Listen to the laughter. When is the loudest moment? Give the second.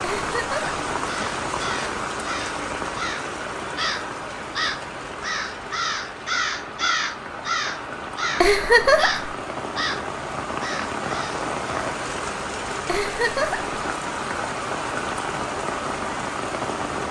9 s.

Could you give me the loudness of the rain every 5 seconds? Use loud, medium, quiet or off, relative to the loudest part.
loud, medium, loud, loud.